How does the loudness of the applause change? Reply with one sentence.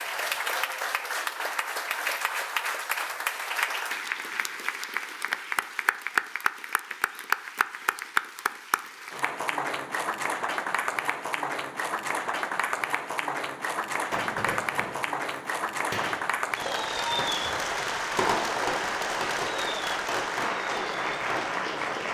The volume of the applause stays about the same.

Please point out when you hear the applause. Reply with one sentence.
The applause can be heard from 0.0 to 22.0 s.